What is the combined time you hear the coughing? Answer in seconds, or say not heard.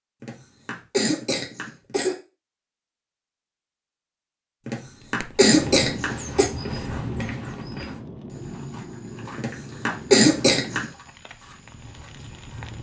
5 s.